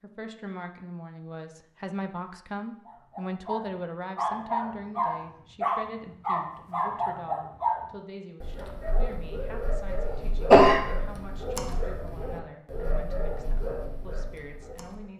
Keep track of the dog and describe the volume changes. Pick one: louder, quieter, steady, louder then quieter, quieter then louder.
quieter.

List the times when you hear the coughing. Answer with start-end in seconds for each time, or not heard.
9.9-10.8.